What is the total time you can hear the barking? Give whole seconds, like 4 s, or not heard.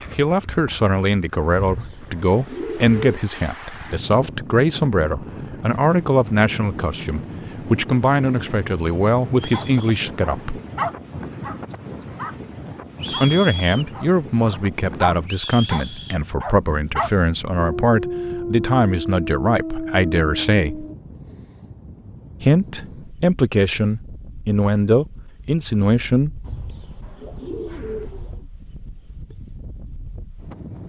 11 s.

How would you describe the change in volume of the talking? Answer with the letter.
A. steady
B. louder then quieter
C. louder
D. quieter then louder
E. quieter
A.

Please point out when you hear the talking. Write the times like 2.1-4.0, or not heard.
0.1-10.6, 13.2-20.9, 22.4-26.3.